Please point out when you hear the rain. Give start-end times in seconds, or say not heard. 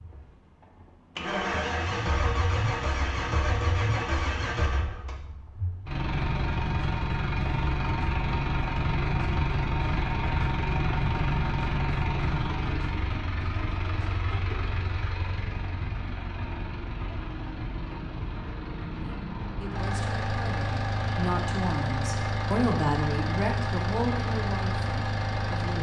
not heard.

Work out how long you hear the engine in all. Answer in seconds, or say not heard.
26 s.